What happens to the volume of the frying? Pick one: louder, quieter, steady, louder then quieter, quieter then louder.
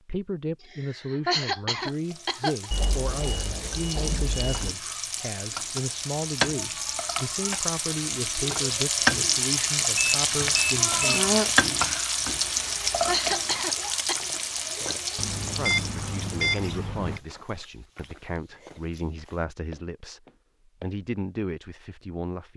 louder then quieter.